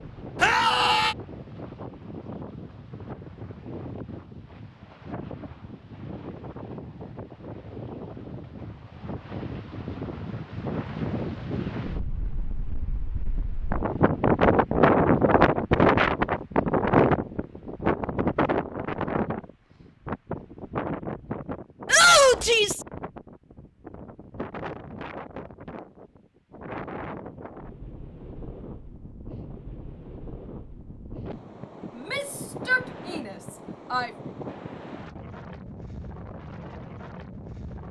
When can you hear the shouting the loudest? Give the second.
22 s.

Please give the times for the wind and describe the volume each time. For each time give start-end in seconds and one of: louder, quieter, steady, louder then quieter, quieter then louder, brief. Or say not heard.
0.0-37.8 louder then quieter.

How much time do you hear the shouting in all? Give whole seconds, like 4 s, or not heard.
4 s.